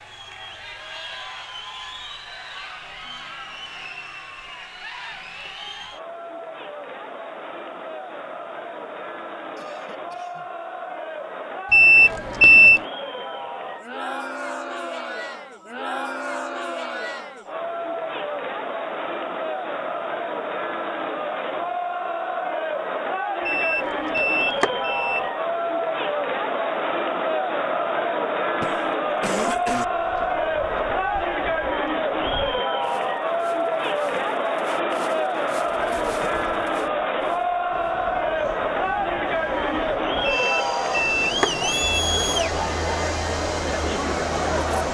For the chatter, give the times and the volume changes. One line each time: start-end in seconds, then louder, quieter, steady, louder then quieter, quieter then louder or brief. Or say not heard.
0.0-44.9 louder.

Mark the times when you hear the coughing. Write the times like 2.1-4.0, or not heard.
9.6-10.5, 28.6-29.9.